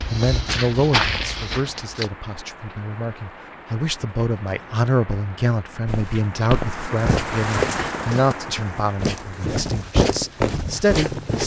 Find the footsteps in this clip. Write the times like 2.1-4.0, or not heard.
0.0-2.1, 5.8-11.4.